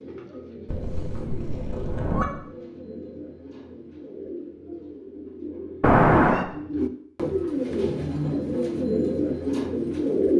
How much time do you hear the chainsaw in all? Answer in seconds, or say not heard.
not heard.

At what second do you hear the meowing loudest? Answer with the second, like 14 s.
6 s.